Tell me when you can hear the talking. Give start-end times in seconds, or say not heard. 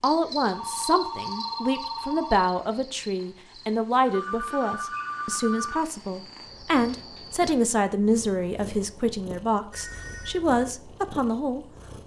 0.0-12.0.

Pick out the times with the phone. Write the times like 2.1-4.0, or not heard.
0.5-2.4, 4.0-5.8, 9.7-10.4.